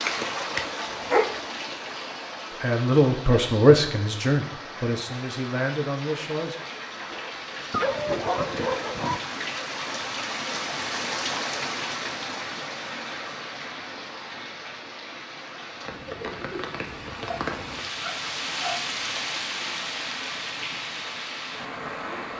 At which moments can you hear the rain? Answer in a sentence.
You can hear the rain from 0.0 to 22.3 s.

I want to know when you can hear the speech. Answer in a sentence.
The speech can be heard from 2.6 to 6.5 s.